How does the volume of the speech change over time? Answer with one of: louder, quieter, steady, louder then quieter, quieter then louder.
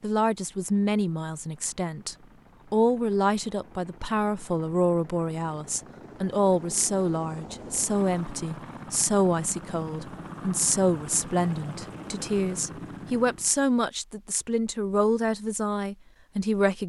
steady.